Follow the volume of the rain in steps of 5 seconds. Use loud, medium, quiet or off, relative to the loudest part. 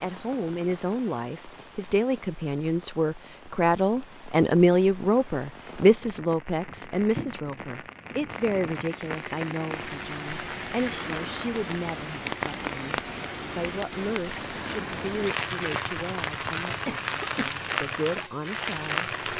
quiet, medium, loud, loud.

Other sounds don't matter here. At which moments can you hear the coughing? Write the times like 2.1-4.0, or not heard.
16.9-17.6.